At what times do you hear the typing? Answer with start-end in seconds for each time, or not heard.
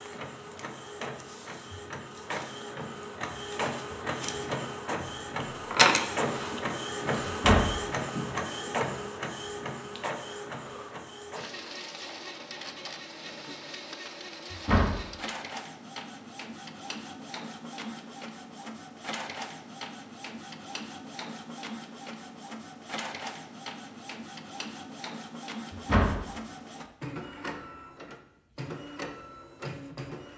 not heard.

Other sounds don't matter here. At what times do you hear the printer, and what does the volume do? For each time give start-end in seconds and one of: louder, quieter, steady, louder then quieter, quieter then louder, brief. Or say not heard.
0.0-30.3 quieter.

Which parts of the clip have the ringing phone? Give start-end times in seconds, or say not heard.
not heard.